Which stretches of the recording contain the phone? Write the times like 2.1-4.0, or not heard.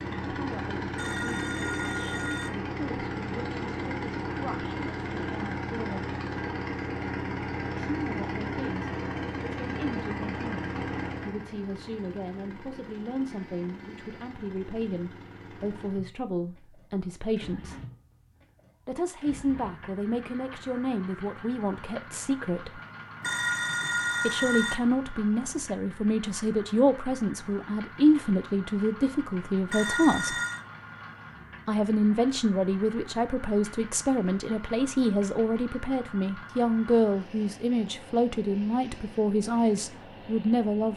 0.9-2.5, 23.2-24.8, 29.6-30.6.